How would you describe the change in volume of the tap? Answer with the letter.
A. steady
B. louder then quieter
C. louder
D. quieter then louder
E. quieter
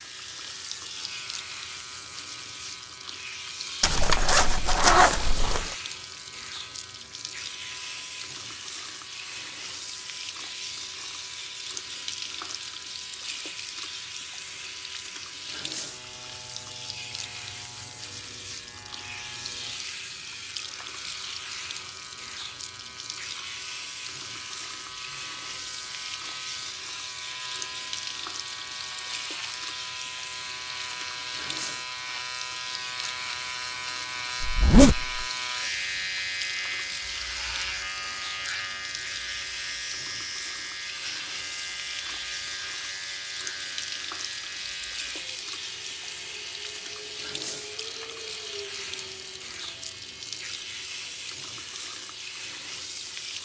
A.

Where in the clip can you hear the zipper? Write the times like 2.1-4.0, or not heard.
3.8-5.8, 34.4-35.2.